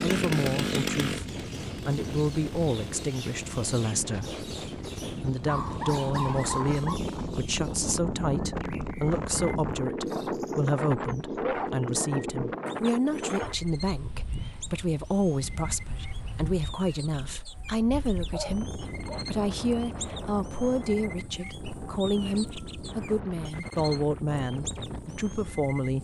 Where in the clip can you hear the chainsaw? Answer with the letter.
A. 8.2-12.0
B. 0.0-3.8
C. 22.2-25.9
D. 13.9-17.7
B.